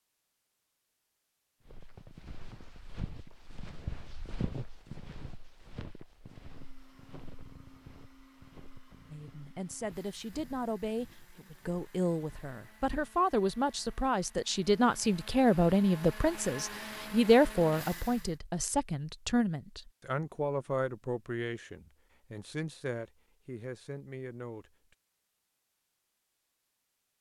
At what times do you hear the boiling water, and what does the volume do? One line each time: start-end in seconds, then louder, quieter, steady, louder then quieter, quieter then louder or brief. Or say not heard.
not heard.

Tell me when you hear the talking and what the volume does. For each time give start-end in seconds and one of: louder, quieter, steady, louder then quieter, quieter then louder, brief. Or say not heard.
9.1-24.7 louder then quieter.